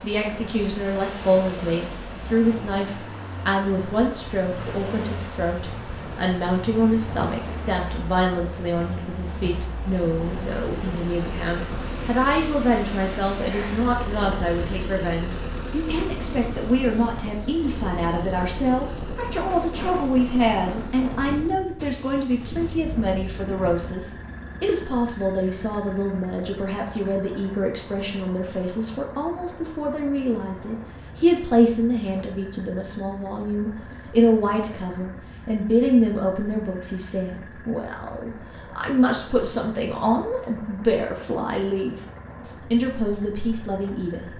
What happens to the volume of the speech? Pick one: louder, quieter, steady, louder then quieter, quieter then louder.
steady.